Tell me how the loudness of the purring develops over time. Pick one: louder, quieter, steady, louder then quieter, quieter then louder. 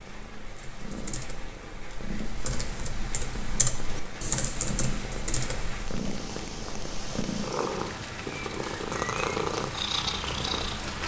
louder.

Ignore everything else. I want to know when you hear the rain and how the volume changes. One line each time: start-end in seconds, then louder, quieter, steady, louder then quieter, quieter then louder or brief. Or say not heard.
0.0-11.0 louder.